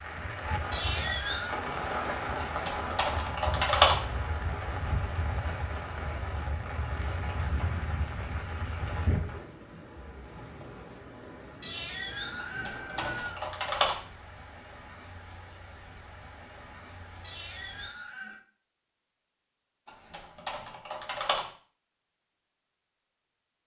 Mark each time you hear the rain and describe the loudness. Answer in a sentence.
The rain can be heard from 0.0 to 17.9 s, getting quieter.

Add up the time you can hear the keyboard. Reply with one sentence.
The keyboard can be heard for 5 seconds in total.